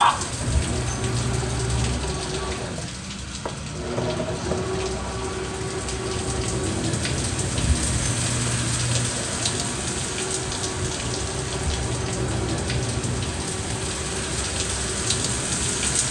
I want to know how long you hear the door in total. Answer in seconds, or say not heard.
5 s.